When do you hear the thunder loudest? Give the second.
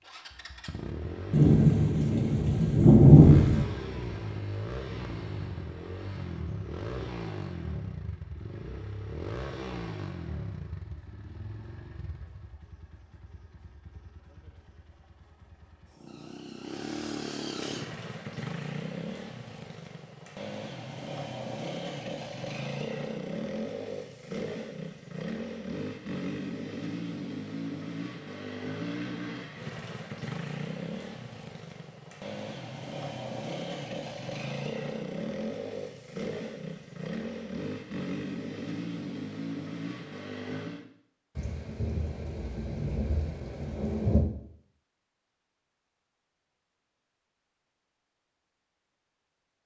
3 s.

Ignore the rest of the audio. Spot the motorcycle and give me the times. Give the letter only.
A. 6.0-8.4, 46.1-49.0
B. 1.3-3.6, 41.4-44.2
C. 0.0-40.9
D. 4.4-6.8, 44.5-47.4
C.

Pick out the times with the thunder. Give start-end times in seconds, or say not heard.
1.3-3.6, 41.4-44.2.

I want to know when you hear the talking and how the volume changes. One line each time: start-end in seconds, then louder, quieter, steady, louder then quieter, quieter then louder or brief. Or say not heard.
not heard.